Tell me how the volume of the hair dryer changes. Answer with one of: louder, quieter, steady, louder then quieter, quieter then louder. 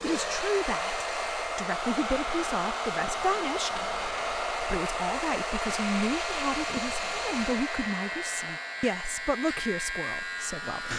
quieter.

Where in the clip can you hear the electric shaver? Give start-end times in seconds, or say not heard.
0.0-10.9.